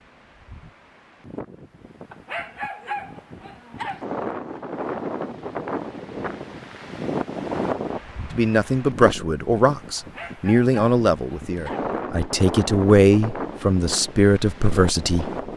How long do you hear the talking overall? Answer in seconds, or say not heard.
7 s.